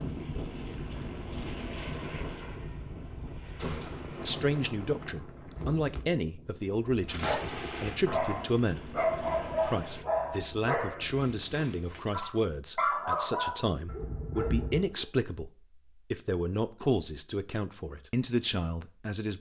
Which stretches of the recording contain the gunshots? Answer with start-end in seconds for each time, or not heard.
3.5-4.2.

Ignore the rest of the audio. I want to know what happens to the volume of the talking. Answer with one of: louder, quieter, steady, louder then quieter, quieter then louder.
steady.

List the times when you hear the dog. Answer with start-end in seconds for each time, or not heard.
7.0-15.1.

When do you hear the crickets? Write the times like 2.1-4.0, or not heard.
not heard.